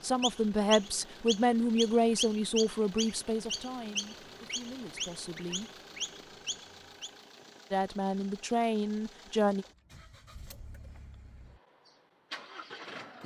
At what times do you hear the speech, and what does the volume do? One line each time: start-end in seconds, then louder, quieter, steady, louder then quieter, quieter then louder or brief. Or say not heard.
0.0-5.7 quieter
7.7-9.7 brief.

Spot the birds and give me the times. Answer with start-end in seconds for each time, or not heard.
0.0-7.1.